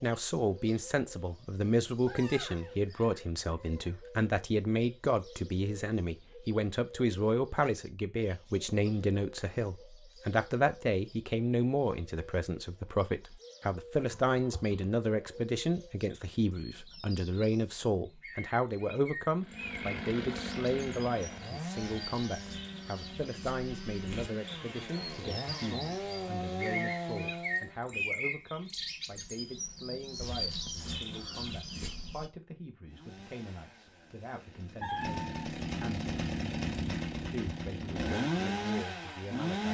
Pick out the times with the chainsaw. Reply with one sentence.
The chainsaw can be heard from 19.4 to 28.1 s and from 32.9 to 39.7 s.